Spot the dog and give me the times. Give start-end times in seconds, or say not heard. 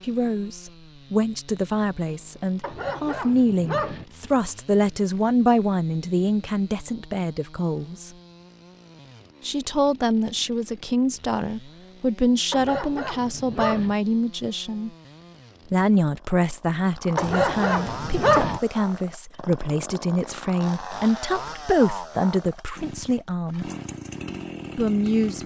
2.6-4.0, 12.5-13.9, 17.1-18.6.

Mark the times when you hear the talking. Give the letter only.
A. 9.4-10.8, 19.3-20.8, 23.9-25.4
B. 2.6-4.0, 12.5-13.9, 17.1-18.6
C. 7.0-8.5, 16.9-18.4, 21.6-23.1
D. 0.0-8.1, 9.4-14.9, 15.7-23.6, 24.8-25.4
D.